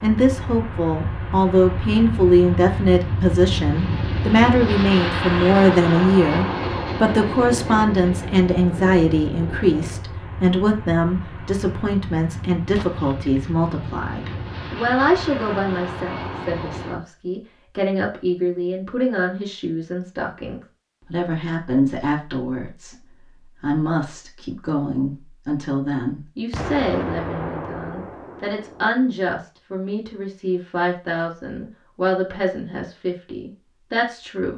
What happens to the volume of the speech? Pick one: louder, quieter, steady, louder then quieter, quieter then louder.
quieter.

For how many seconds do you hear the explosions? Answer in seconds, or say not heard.
3 s.